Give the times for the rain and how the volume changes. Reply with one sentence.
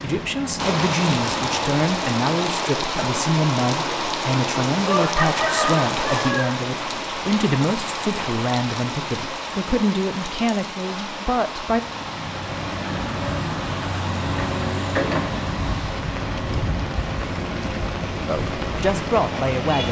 The rain can be heard from 0.0 to 19.8 s, getting quieter.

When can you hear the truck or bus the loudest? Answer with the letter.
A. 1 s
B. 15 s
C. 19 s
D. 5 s
B.